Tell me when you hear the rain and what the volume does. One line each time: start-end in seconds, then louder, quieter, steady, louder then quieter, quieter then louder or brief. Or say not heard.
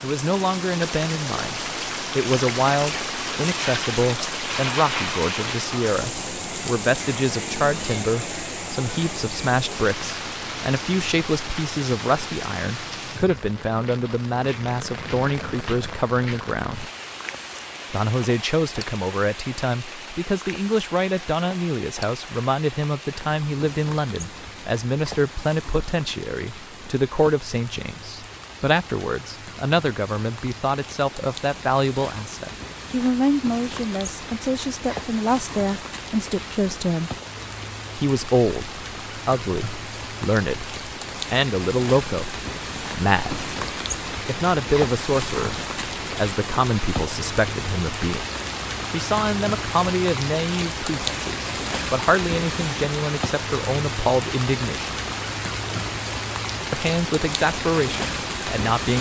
0.0-58.9 quieter then louder.